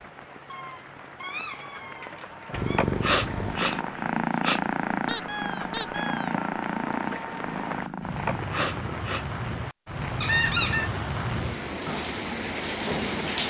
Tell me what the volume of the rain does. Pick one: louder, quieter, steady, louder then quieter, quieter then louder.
louder.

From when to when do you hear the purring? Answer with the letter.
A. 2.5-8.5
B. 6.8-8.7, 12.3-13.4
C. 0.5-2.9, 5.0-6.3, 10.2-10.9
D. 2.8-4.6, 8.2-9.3
A.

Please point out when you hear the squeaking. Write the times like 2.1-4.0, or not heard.
0.5-2.9, 5.0-6.3, 10.2-10.9.